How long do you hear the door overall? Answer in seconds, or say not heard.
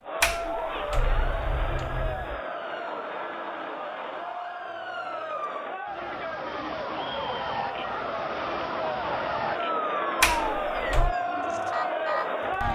3 s.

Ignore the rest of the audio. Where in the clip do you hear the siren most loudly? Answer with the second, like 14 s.
10 s.